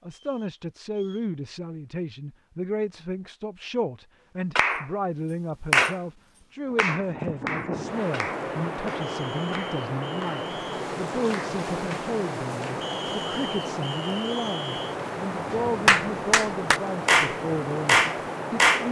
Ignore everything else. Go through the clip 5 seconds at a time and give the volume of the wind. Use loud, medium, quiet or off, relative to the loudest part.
off, loud, loud, loud.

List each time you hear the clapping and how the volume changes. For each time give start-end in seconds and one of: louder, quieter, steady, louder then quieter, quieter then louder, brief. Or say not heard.
4.5-10.4 quieter
11.3-12.8 brief
15.8-18.8 brief.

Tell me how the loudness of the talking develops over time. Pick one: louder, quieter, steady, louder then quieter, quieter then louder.
steady.